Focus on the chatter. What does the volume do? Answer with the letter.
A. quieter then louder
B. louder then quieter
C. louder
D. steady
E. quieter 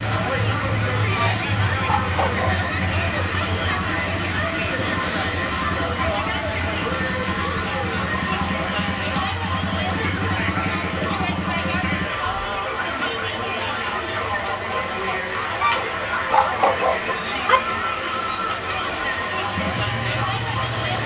D.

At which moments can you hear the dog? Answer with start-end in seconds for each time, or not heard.
1.1-2.8, 15.6-17.6.